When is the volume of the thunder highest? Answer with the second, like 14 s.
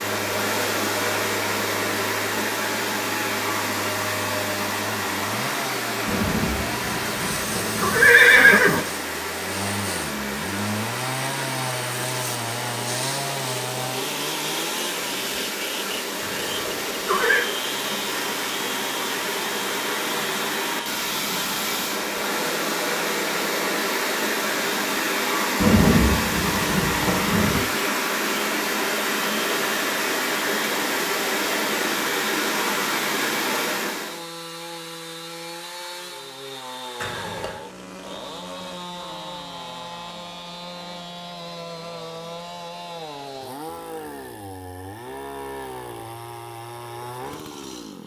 26 s.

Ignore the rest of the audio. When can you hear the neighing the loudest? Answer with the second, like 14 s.
8 s.